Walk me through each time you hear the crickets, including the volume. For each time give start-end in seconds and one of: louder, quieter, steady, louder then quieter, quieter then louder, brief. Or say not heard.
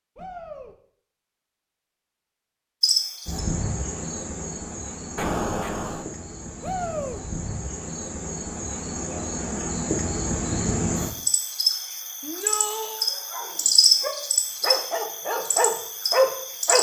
2.8-16.7 louder.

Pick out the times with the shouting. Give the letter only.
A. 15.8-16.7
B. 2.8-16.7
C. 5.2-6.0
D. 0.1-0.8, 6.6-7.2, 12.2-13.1
D.